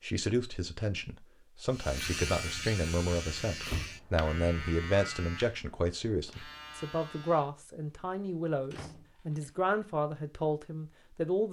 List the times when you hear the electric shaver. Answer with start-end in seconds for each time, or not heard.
1.7-7.7.